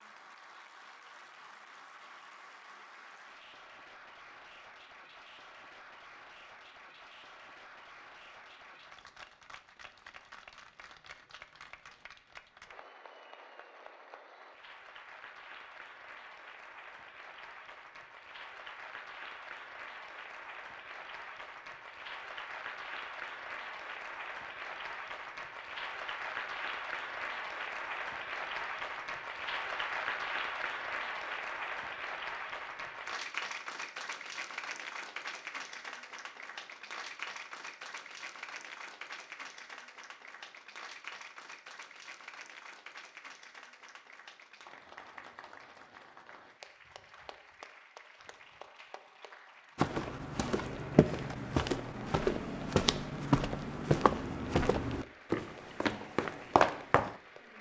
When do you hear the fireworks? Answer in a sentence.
The fireworks can't be heard in this clip.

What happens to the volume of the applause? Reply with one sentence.
The loudness of the applause goes up, then down.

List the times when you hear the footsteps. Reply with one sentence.
The footsteps can be heard from 49.8 to 57.1 s.